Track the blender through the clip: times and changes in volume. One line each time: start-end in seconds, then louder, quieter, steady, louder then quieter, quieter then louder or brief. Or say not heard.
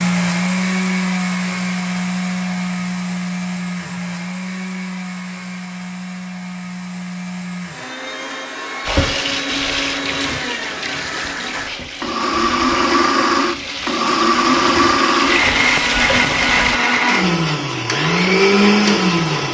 0.0-19.4 quieter then louder.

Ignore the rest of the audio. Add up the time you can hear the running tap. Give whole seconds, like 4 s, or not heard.
8 s.